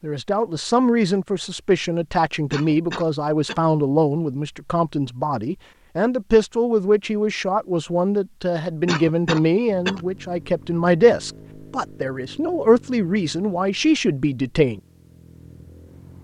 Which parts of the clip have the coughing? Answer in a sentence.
You can hear the coughing from 2.5 to 3.6 s and from 8.8 to 10.1 s.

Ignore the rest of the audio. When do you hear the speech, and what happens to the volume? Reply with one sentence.
The speech can be heard from 0.0 to 14.8 s, at a steady volume.